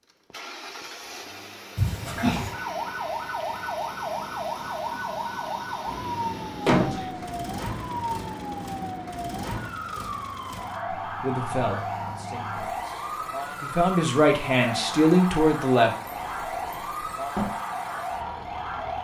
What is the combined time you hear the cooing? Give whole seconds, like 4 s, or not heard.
not heard.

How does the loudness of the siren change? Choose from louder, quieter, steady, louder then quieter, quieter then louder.
steady.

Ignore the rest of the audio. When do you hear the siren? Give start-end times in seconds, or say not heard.
2.5-19.0.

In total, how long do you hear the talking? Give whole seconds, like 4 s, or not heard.
5 s.